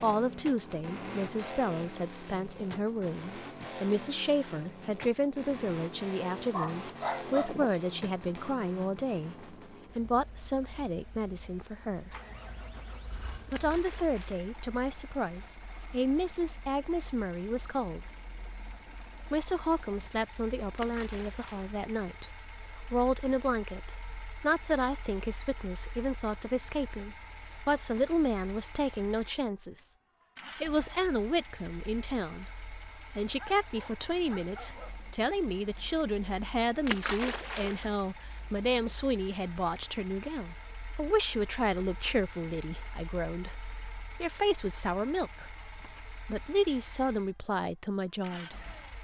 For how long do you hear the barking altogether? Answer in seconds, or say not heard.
3 s.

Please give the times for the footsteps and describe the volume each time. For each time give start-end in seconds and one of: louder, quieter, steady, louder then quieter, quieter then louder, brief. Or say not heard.
not heard.